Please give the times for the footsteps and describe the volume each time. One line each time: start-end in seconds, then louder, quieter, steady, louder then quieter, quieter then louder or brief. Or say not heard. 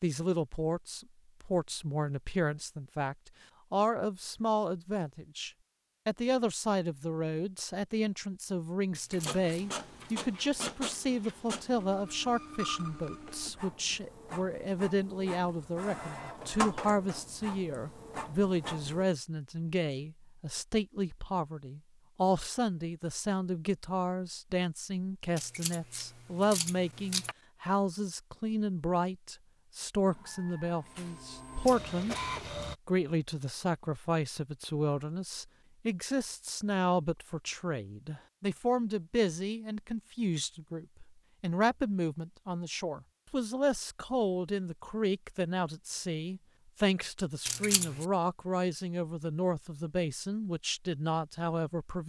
not heard.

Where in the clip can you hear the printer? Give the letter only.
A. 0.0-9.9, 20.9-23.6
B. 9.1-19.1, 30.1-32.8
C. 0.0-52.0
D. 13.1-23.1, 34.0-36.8
B.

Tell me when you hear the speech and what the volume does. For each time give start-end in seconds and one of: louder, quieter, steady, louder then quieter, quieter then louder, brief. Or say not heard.
0.0-52.0 steady.